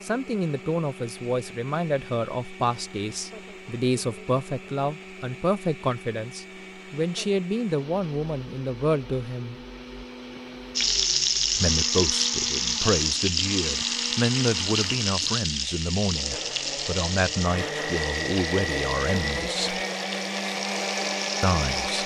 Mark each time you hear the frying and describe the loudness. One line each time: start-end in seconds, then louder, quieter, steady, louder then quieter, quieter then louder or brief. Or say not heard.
10.8-22.0 quieter.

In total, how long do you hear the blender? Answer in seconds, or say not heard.
22 s.